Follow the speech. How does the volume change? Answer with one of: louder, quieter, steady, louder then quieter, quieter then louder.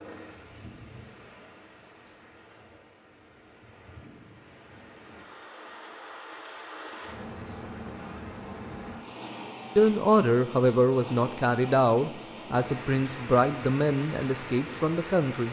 quieter.